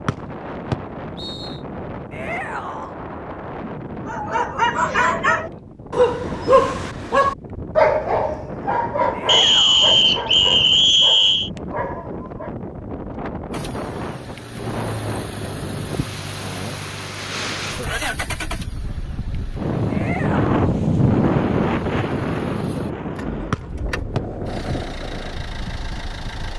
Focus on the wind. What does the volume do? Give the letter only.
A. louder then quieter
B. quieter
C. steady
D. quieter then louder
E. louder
E.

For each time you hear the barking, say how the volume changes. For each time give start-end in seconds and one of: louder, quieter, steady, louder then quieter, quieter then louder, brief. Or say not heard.
4.0-12.6 quieter.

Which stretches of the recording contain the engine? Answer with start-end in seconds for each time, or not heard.
13.5-26.5.